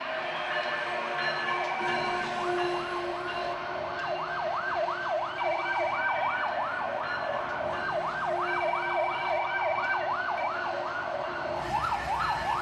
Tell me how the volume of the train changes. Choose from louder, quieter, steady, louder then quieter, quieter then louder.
quieter.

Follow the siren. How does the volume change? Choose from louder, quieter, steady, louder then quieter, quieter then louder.
louder.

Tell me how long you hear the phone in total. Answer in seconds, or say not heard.
4 s.